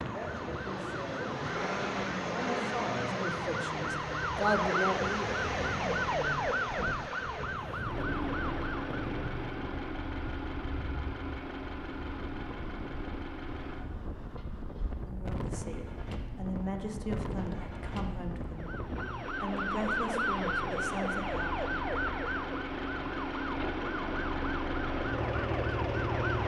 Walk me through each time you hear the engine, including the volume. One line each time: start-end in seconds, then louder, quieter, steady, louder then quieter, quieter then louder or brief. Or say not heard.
0.0-26.4 quieter then louder.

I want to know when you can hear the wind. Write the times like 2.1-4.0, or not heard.
0.0-19.2.